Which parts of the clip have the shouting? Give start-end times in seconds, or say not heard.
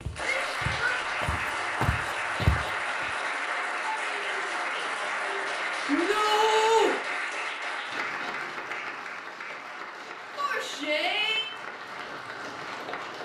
0.2-1.0, 5.8-7.0, 10.3-11.5.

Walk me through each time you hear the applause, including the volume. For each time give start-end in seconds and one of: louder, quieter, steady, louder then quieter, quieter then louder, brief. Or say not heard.
0.0-13.2 quieter.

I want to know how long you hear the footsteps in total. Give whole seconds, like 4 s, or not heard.
3 s.